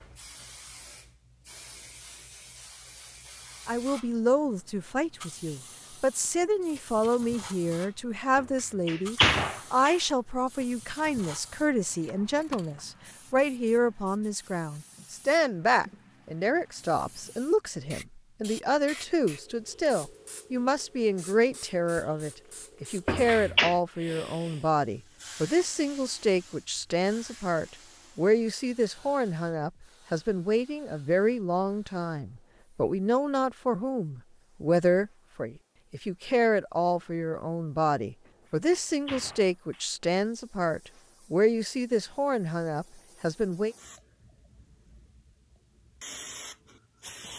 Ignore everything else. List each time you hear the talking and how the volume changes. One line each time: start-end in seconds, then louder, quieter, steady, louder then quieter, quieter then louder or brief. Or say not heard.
3.6-43.8 steady.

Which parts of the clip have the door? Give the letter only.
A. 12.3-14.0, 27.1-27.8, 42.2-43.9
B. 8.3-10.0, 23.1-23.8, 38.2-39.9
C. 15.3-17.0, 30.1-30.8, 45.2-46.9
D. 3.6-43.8
B.